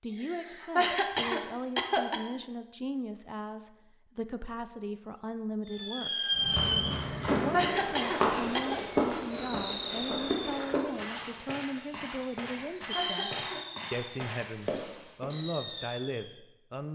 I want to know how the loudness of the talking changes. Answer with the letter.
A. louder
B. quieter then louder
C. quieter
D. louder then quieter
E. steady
E.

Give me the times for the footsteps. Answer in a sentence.
The footsteps can be heard from 6.3 to 15.3 s.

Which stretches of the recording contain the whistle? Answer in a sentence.
You can hear the whistle from 12.8 to 13.4 s.